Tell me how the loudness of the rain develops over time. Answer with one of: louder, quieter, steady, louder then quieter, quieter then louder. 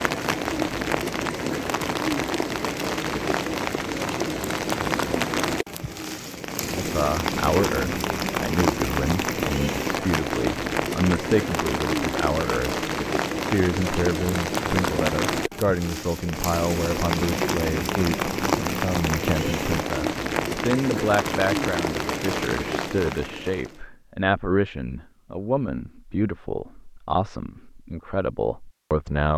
steady.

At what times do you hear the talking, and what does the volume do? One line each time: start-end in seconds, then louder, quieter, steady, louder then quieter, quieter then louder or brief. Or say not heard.
6.8-29.3 steady.